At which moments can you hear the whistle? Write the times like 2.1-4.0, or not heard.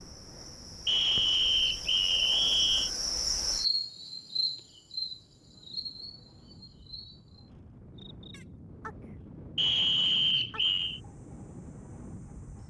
0.8-2.9, 9.6-11.0.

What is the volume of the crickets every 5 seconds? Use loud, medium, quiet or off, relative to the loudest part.
loud, medium, quiet.